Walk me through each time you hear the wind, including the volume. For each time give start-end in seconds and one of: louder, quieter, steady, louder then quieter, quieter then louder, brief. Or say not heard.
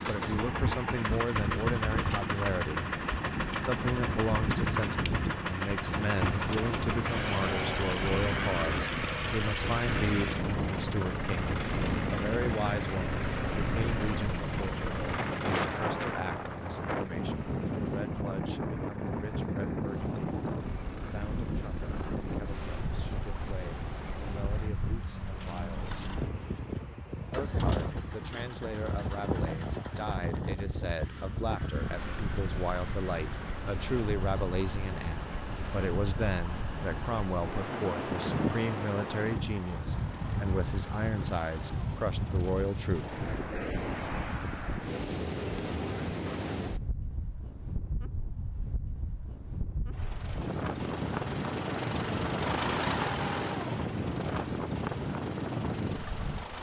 0.0-56.5 steady.